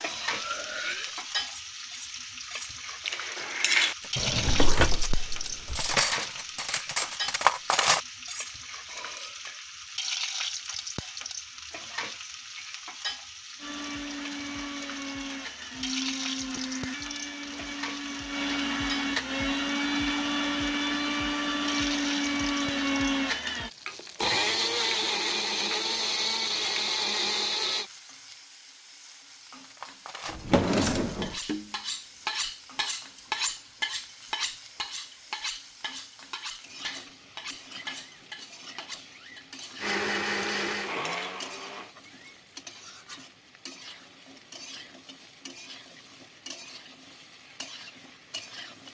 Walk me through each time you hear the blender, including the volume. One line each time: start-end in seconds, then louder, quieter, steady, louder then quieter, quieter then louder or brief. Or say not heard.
13.6-27.9 louder
39.8-41.9 brief.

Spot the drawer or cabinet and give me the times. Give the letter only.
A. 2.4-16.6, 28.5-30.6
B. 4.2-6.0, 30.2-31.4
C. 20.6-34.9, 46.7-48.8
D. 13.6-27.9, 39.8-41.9
B.